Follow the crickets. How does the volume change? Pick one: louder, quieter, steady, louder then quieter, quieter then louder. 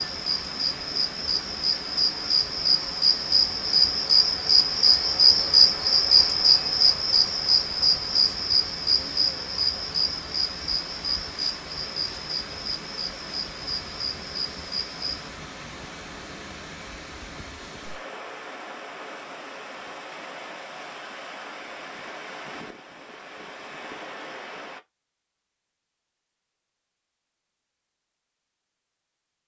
louder then quieter.